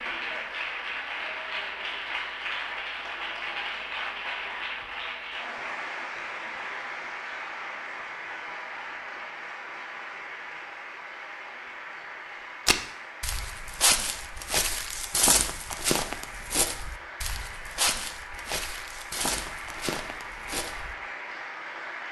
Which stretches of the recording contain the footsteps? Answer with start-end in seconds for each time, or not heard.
12.7-20.9.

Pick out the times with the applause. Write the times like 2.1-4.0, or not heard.
0.0-22.0.